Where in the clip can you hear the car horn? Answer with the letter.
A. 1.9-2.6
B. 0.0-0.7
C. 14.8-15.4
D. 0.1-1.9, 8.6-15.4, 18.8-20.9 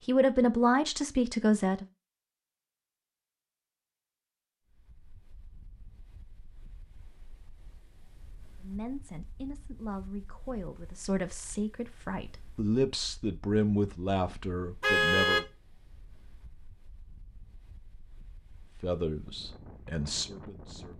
C.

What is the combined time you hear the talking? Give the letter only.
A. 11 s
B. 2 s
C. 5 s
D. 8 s
A.